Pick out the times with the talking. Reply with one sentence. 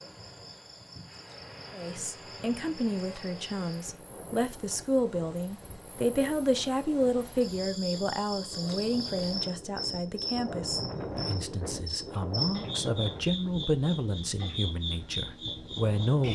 The talking can be heard from 1.7 to 16.3 s.